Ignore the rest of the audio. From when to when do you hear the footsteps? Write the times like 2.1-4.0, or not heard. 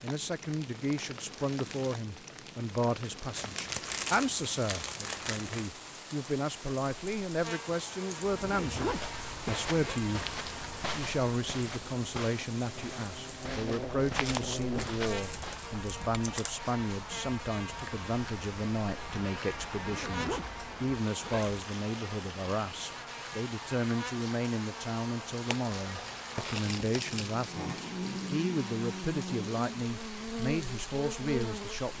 8.8-15.8.